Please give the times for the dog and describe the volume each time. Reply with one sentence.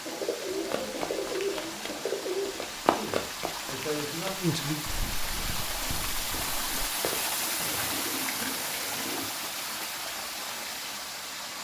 You can't hear the dog here.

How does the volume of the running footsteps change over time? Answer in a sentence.
The loudness of the running footsteps goes up, then down.